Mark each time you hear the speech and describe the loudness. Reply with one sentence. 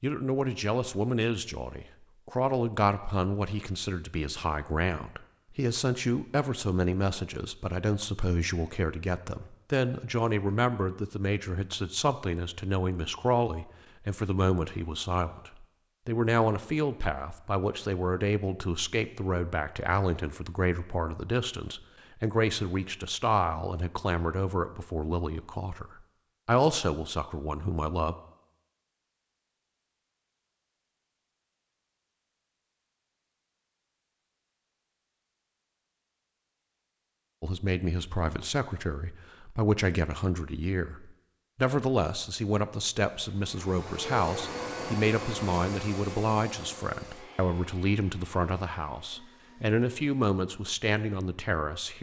The speech can be heard from 0.0 to 28.1 s, at a steady volume; and from 37.4 to 51.9 s, at a steady volume.